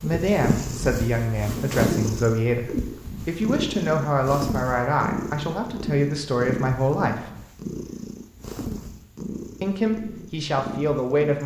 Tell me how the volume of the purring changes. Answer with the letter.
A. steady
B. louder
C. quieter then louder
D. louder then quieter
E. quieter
E.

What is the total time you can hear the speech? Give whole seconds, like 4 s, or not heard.
9 s.